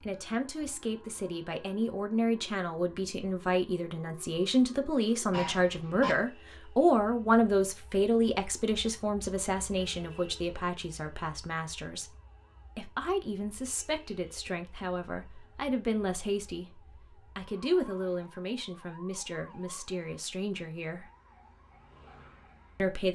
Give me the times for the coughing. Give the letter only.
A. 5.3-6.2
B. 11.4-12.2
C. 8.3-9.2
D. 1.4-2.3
A.